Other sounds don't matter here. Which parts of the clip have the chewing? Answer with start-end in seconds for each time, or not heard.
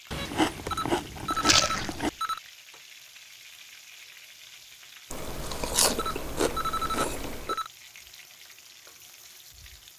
0.1-2.1, 5.1-7.5.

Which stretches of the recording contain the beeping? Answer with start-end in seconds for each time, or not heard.
0.7-2.4, 5.9-7.7.